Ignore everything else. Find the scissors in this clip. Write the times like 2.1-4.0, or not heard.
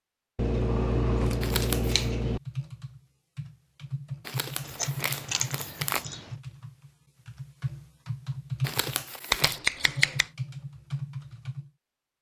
0.3-2.4, 4.7-6.2, 9.3-10.2.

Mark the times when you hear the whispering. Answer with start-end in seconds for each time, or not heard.
not heard.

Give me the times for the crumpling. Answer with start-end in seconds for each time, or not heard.
1.4-2.0, 4.2-6.0, 8.6-9.6.